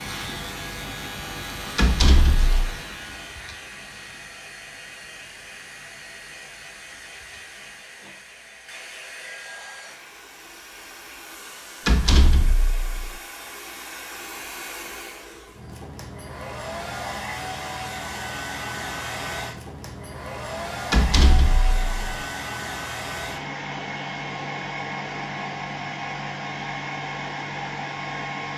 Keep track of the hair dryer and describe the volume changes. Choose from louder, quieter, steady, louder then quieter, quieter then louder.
louder.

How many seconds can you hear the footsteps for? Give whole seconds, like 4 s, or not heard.
not heard.